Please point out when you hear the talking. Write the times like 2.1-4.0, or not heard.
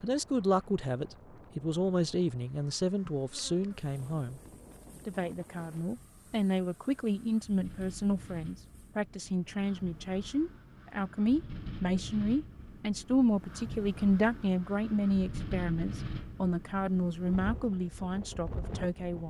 0.0-4.4, 5.0-19.2.